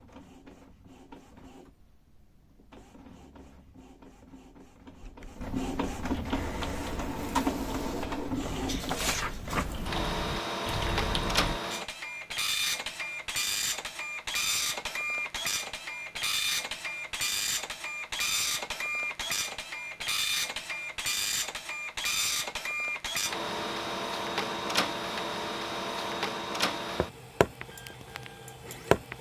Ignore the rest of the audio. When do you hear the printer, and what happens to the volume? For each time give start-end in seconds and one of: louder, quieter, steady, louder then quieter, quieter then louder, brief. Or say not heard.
0.0-29.1 louder.